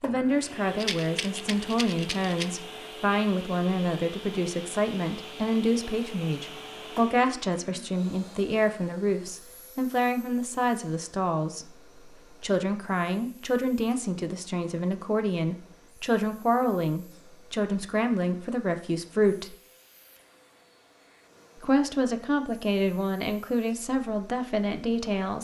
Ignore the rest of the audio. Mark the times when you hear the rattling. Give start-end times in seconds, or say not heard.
0.8-2.6.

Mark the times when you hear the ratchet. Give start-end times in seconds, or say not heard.
not heard.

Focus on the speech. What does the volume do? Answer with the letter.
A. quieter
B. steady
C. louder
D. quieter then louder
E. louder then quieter
B.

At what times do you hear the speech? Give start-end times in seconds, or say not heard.
0.0-19.6, 21.6-25.3.